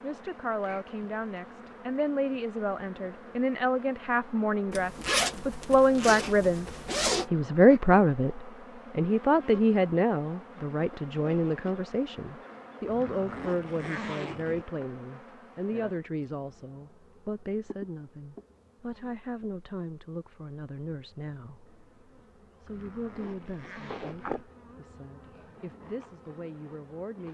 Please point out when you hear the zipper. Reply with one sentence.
You can hear the zipper from 4.7 to 7.2 s, from 12.8 to 14.7 s and from 22.6 to 24.4 s.